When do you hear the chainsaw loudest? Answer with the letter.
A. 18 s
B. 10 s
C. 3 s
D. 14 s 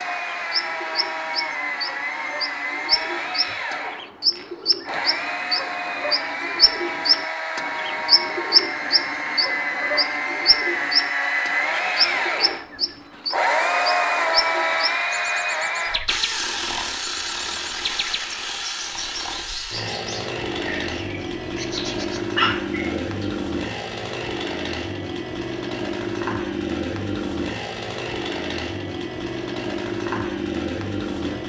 D.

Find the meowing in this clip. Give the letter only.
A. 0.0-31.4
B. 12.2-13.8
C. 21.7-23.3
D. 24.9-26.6
C.